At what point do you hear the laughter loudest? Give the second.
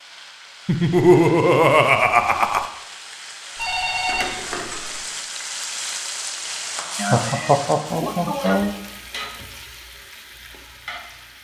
1 s.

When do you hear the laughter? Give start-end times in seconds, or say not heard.
0.7-2.7, 7.0-8.7.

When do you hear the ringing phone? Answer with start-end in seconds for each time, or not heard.
3.5-5.0.